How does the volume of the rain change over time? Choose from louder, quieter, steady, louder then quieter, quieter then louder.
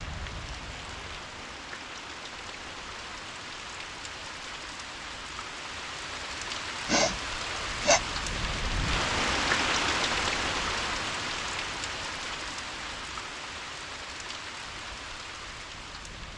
louder then quieter.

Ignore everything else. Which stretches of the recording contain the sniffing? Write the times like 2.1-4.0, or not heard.
6.8-8.0.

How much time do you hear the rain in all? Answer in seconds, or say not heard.
16 s.